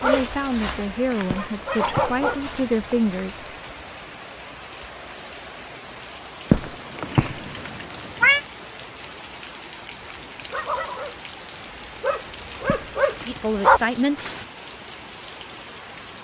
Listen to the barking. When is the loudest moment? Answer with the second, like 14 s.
14 s.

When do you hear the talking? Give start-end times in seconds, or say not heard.
0.0-3.5, 13.2-14.2.